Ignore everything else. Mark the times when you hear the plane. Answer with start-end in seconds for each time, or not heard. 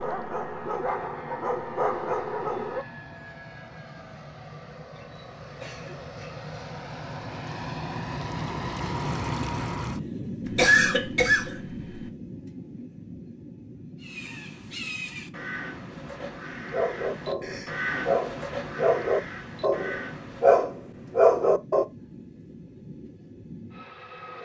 0.0-24.3.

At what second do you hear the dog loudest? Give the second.
21 s.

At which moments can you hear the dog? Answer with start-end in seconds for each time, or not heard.
0.0-2.9, 16.7-21.9.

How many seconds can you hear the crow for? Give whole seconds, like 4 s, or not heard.
7 s.